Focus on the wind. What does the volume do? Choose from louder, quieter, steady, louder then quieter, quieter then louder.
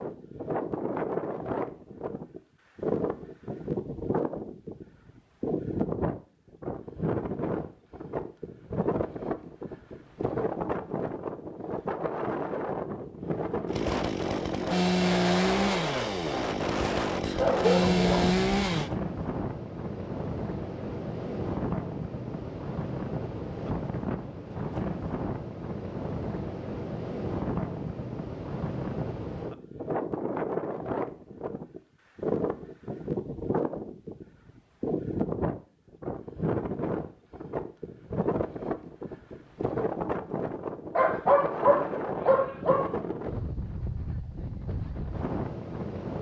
steady.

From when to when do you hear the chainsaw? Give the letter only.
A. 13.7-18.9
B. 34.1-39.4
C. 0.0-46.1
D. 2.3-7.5
A.